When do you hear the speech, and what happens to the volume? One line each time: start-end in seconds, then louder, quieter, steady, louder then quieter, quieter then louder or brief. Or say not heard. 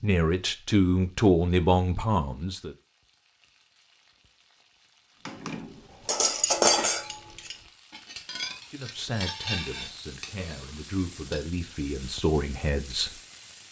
0.0-2.8 brief
8.7-13.2 quieter then louder.